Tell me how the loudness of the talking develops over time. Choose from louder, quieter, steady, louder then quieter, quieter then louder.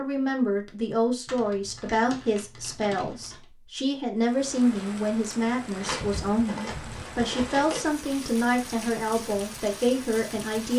steady.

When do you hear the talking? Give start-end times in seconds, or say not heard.
0.0-10.7.